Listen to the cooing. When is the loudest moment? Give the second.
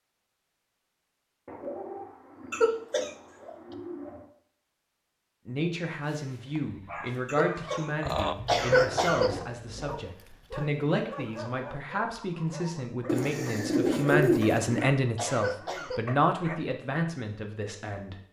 14 s.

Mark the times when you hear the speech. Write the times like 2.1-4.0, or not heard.
5.5-18.2.